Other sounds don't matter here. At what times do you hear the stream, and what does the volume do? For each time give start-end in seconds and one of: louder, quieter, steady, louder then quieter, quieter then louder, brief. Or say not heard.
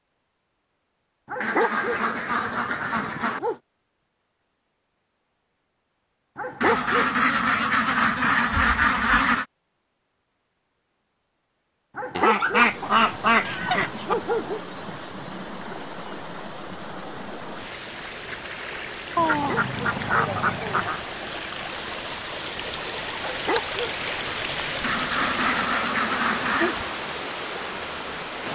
12.5-28.4 louder.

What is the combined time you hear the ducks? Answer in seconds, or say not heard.
11 s.